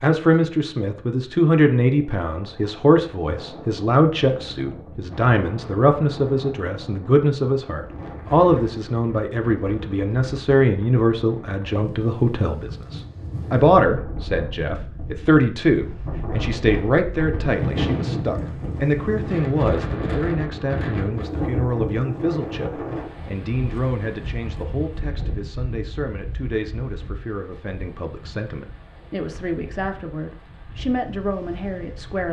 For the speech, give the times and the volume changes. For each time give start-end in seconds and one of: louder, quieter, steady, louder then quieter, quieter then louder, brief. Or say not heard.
0.0-32.2 quieter.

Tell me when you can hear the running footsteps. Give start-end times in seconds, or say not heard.
not heard.